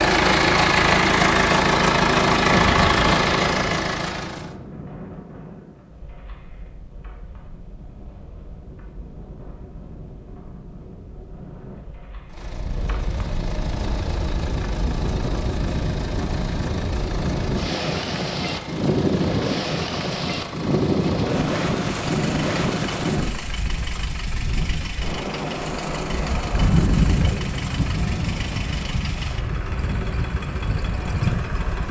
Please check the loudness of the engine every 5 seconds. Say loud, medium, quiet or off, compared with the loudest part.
loud, off, quiet, quiet, quiet, quiet, quiet.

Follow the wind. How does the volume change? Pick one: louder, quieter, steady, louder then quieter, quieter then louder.
louder.